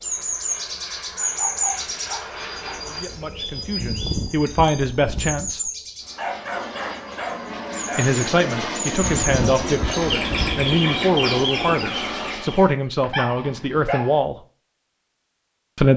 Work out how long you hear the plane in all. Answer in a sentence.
The plane can be heard for 10 seconds in total.